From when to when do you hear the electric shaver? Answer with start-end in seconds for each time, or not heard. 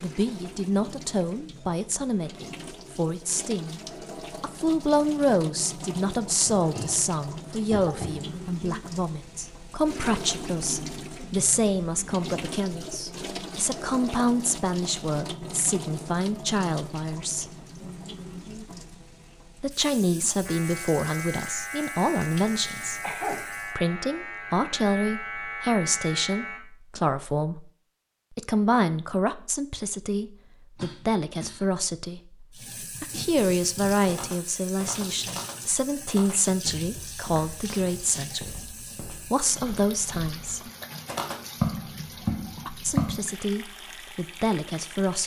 20.4-26.6.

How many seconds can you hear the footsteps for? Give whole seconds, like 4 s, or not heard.
10 s.